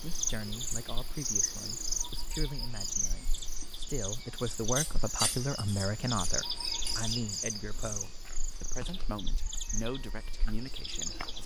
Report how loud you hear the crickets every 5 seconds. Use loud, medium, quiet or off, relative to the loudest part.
loud, loud, medium.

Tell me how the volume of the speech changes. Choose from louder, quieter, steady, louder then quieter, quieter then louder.
louder then quieter.